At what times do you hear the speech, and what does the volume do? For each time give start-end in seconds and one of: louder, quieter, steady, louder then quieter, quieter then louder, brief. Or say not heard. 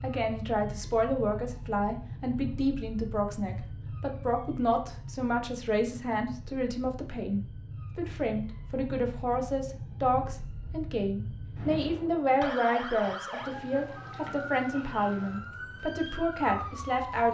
0.0-17.2 steady.